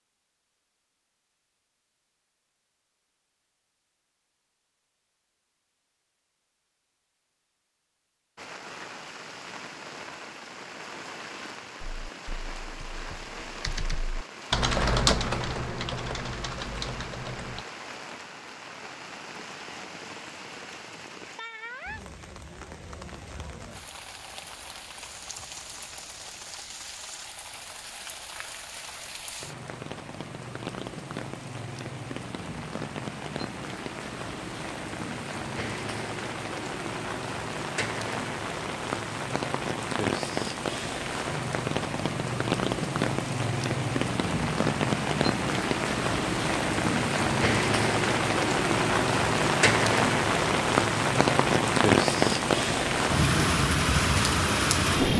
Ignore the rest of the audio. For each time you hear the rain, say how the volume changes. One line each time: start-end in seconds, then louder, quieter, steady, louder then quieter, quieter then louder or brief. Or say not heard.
8.3-55.1 louder.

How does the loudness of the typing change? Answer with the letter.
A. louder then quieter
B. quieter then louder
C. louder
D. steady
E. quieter
A.